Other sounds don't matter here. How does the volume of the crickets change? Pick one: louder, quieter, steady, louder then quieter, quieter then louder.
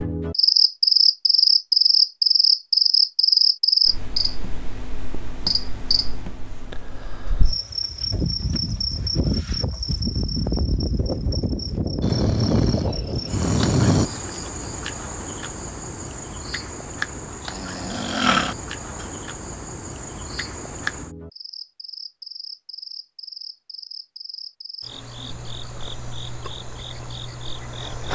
quieter.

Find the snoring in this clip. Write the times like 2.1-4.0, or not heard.
12.0-14.1, 17.5-19.1.